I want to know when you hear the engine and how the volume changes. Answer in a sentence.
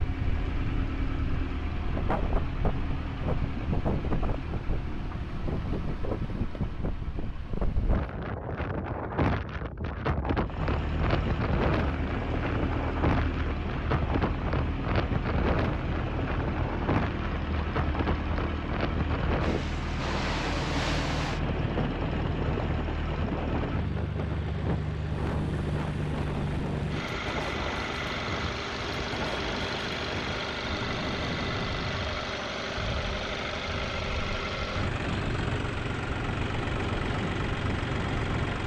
You can hear the engine from 0.0 to 8.3 s, getting quieter; and from 10.4 to 38.6 s, at a steady volume.